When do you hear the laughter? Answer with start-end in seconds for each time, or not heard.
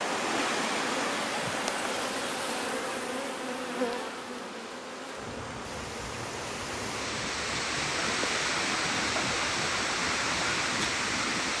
not heard.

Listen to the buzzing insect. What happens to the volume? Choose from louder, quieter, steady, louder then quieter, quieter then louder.
quieter.